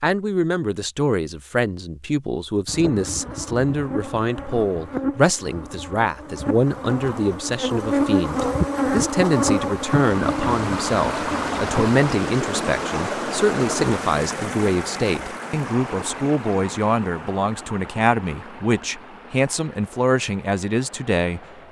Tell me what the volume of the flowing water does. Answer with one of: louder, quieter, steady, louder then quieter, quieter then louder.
quieter.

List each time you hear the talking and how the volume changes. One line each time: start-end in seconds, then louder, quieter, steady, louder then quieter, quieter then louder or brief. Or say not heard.
0.0-21.4 steady.